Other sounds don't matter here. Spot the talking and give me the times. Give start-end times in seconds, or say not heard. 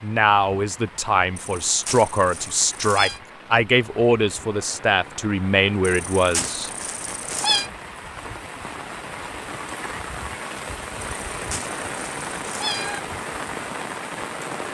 0.0-6.7.